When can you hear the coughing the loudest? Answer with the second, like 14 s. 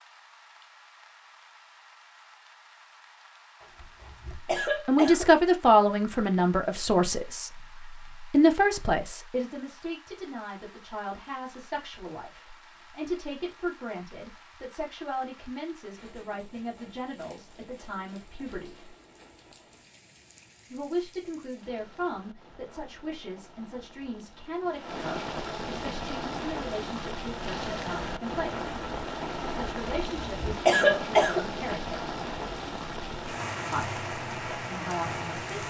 31 s.